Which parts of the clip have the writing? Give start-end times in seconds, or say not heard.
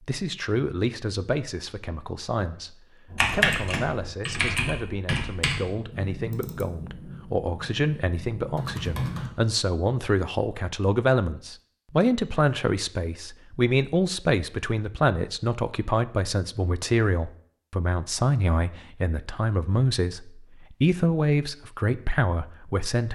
not heard.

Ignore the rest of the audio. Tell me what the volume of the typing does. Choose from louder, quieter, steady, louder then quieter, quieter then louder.
quieter then louder.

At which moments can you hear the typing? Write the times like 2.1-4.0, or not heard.
3.1-9.3.